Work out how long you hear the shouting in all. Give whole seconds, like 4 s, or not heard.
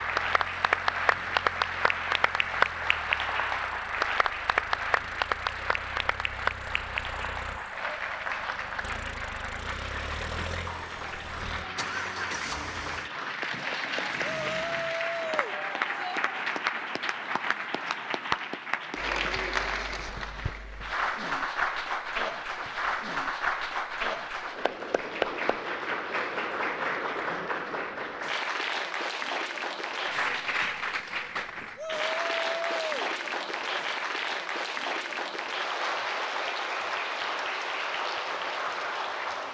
3 s.